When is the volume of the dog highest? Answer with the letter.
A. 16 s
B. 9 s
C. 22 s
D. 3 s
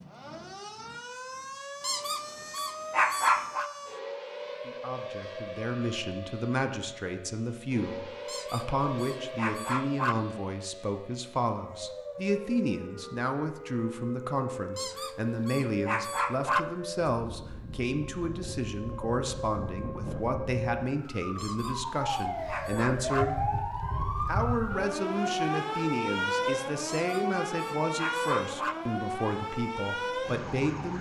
D.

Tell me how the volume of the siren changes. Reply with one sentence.
The volume of the siren goes up.